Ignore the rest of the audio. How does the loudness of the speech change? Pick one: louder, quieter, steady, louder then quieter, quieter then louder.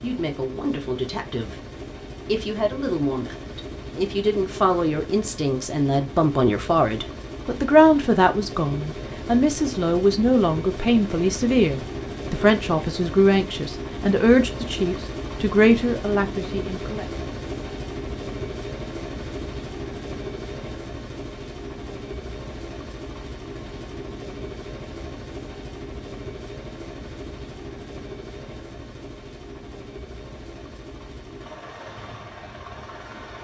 louder.